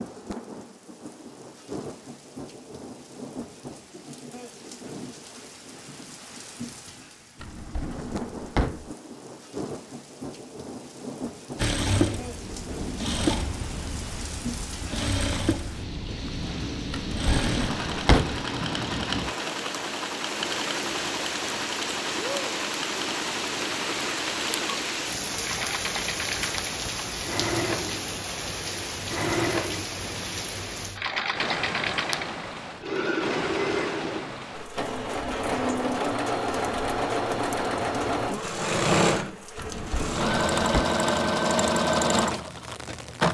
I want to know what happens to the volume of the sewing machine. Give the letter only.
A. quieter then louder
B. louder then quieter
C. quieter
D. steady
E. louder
E.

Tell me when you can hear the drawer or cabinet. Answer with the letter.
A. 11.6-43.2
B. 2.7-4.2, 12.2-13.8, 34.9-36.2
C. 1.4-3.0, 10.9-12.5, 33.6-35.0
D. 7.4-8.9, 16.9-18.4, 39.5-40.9
D.